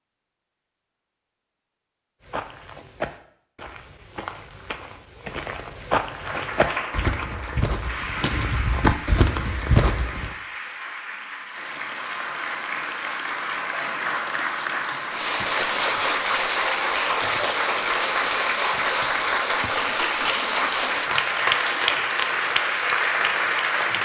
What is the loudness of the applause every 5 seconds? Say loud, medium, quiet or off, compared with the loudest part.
off, medium, medium, loud, loud.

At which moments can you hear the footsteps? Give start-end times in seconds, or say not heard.
2.2-10.3.